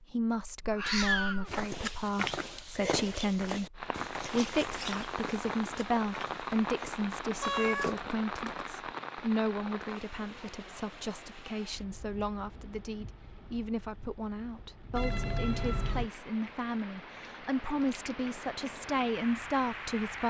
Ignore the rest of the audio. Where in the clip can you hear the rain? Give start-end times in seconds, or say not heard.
3.8-20.2.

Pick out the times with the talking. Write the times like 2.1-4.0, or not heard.
0.0-20.2.